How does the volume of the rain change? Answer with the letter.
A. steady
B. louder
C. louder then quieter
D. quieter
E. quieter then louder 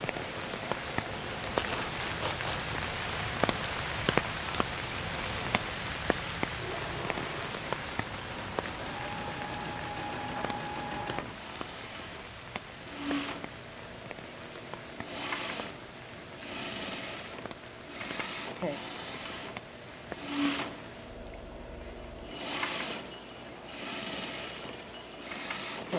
D.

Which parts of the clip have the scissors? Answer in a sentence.
The scissors can be heard from 1.4 to 2.7 s.